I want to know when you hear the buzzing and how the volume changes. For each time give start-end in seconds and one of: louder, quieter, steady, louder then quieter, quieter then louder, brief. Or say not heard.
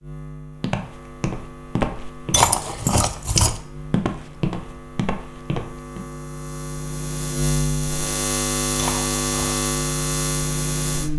0.0-11.1 louder.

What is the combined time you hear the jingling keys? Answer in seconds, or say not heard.
2 s.